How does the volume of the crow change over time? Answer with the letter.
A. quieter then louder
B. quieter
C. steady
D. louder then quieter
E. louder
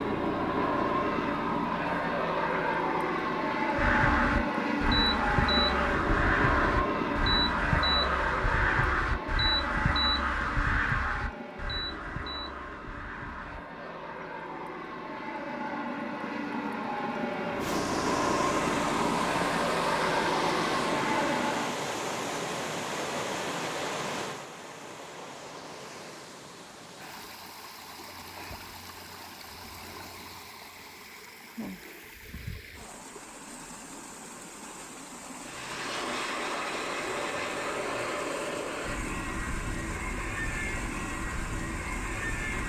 B.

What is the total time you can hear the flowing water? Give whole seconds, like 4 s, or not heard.
25 s.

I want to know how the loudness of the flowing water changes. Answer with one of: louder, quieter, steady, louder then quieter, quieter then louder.
quieter.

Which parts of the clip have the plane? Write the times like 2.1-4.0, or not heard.
0.0-21.9, 35.4-42.6.